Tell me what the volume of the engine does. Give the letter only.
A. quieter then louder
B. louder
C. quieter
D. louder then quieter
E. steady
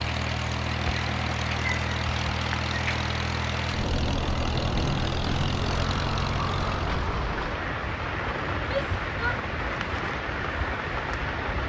E.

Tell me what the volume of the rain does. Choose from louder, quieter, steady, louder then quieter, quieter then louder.
steady.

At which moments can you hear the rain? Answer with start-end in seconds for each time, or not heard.
0.0-11.6.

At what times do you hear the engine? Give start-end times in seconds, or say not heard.
0.0-7.2.